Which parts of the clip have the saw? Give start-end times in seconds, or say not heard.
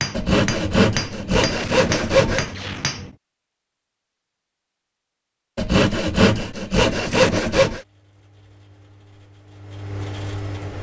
0.1-2.5, 5.5-7.8.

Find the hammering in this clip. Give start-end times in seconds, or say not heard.
0.0-3.1.